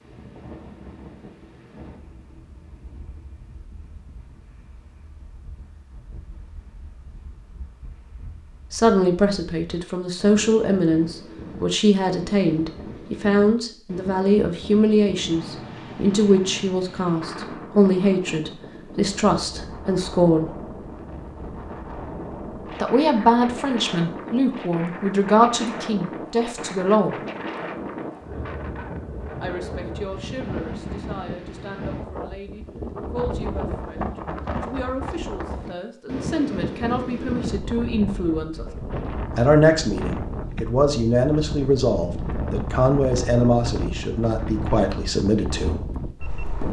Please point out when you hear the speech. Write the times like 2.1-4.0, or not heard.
8.7-20.6, 22.8-27.1, 29.4-38.6, 39.4-45.9.